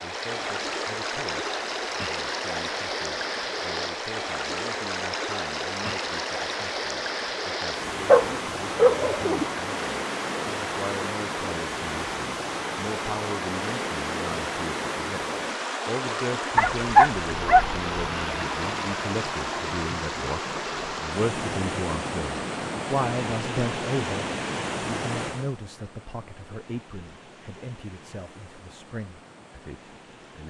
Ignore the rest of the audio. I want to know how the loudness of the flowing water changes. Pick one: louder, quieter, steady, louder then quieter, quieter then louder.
quieter.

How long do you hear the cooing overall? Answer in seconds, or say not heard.
not heard.